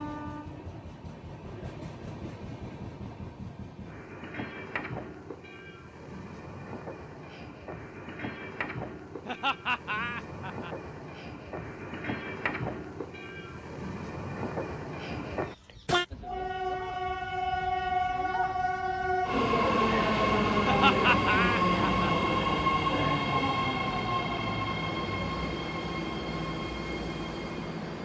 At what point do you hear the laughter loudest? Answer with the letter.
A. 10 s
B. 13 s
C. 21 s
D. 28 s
C.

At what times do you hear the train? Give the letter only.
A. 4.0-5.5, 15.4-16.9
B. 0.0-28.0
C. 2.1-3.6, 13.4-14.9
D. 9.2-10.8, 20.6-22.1
B.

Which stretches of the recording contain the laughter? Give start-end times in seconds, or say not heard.
9.2-10.8, 20.6-22.1.